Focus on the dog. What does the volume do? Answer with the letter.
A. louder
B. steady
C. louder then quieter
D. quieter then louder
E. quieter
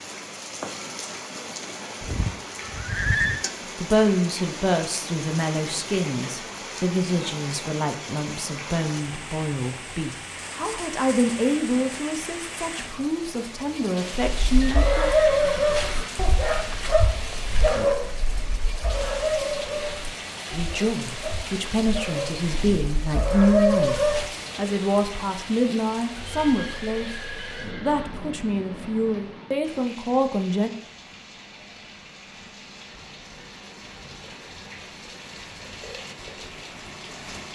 D.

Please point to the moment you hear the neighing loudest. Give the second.
3 s.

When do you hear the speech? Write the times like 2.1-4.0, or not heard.
3.8-15.1, 20.5-27.1, 27.8-30.7.